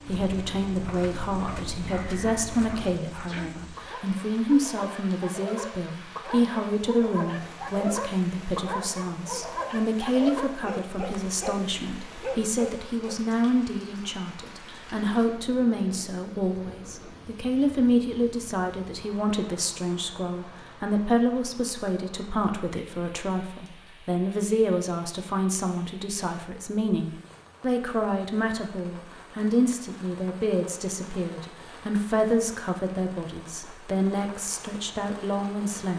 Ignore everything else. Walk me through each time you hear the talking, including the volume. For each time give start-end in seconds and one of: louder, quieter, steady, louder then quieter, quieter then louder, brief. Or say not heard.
0.1-35.9 steady.